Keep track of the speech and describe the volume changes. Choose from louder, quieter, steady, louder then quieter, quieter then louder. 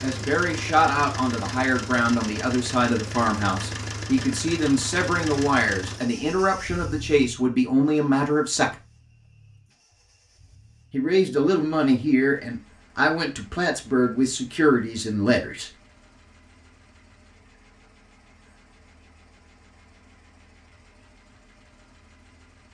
steady.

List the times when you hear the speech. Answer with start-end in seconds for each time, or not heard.
0.0-8.8, 10.9-15.7.